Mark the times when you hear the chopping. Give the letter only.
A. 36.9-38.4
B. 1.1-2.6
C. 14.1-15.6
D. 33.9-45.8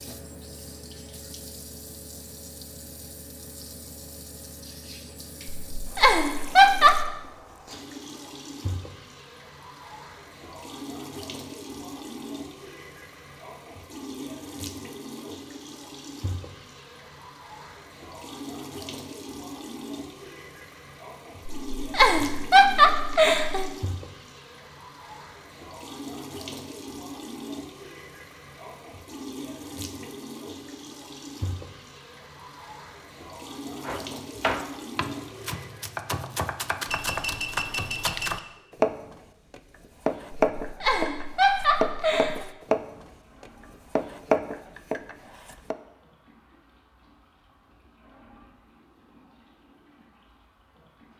D.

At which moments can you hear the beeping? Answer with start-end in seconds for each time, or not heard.
36.9-38.4.